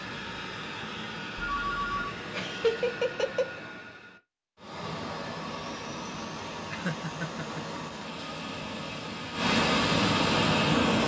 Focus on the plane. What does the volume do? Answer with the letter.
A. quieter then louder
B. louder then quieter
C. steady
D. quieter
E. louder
E.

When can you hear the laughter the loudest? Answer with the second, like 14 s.
3 s.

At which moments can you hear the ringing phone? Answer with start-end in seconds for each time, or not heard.
1.4-2.1.